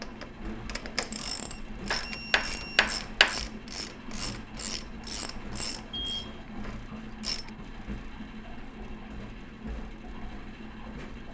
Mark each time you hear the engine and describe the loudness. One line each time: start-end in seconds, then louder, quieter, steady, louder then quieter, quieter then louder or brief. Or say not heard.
0.0-11.2 steady.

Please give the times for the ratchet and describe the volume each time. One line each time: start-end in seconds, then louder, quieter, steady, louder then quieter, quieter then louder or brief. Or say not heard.
0.0-7.5 quieter.